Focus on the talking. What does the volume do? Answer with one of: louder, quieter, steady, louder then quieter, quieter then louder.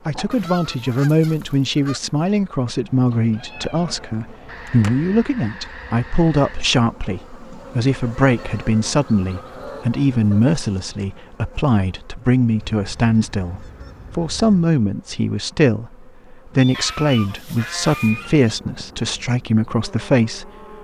steady.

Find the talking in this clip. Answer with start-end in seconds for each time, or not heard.
0.1-20.5.